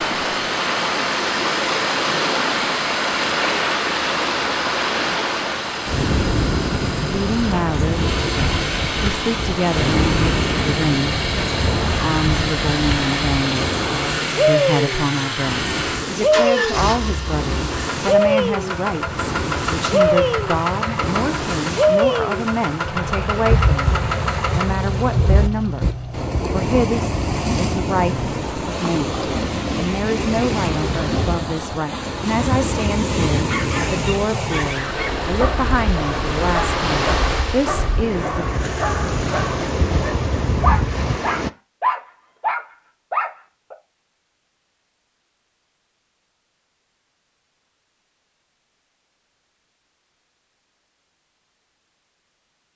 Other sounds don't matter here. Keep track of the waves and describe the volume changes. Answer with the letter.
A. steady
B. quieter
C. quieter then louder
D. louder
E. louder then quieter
A.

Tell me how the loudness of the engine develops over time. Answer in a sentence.
The loudness of the engine stays about the same.